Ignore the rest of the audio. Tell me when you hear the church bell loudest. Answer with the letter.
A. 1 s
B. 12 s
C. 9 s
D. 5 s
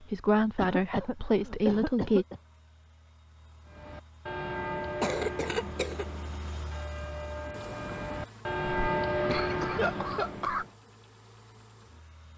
C.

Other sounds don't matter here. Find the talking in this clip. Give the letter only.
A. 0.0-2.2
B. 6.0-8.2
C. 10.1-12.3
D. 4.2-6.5
A.